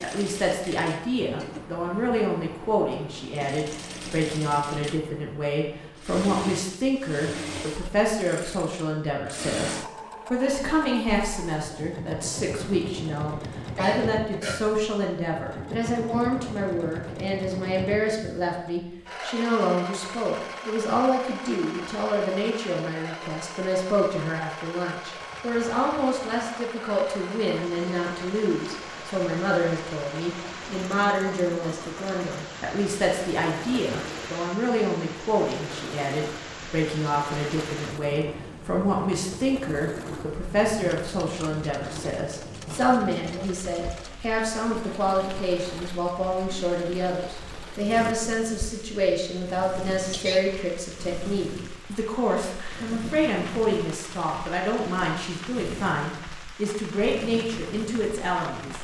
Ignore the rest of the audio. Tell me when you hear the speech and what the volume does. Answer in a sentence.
The speech can be heard from 0.0 to 58.7 s, at a steady volume.